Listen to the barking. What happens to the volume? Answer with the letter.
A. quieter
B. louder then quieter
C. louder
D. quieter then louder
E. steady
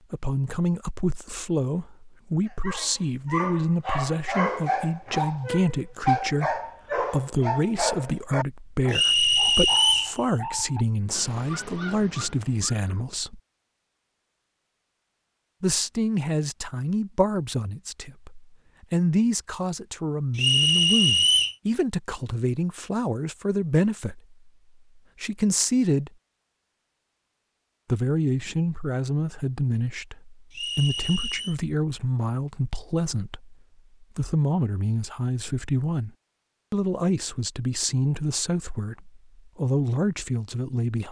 A.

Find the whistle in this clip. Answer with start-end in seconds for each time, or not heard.
8.9-10.2, 20.4-21.6, 30.5-31.6.